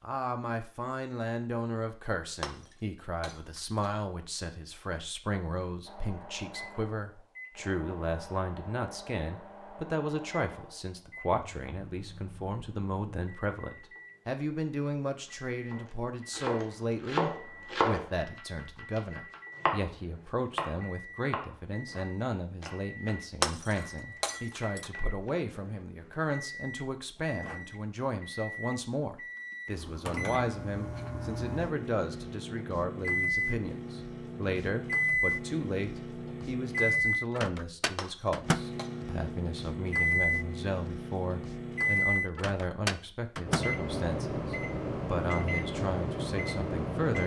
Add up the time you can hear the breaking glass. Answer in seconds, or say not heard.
4 s.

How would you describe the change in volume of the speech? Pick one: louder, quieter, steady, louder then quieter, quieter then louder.
steady.